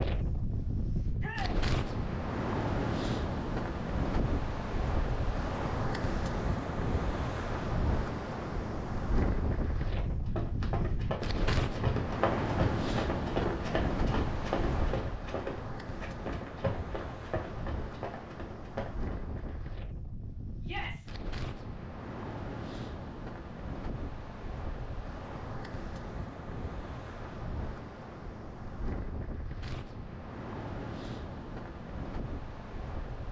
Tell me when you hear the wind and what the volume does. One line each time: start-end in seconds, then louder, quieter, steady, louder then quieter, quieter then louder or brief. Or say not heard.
0.0-33.2 quieter.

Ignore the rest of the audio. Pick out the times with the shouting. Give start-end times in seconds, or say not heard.
1.1-1.6, 20.6-21.1.